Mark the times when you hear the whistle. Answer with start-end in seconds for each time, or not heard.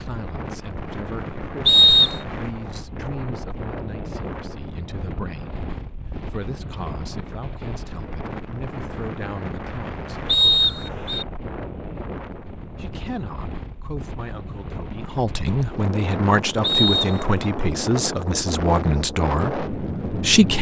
1.6-2.2, 10.2-11.2, 16.6-17.4.